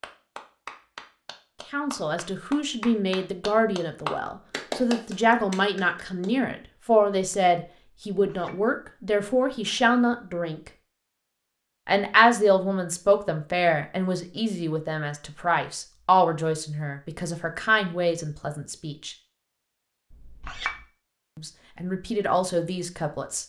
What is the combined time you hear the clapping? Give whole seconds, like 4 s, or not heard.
6 s.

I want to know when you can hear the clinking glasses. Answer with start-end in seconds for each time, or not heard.
8.1-8.7, 20.1-20.9.